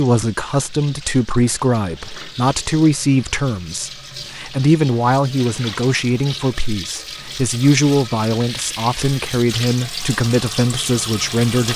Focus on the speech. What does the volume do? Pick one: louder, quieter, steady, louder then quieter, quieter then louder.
steady.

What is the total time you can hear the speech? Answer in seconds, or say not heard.
12 s.